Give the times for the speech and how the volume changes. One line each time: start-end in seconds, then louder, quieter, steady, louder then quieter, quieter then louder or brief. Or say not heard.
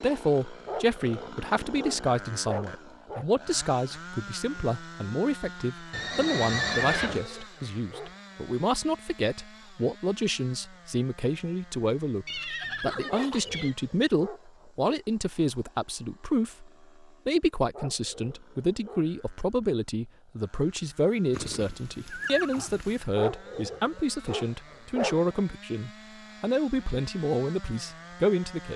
0.0-28.7 steady.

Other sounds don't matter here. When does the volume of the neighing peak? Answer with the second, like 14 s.
7 s.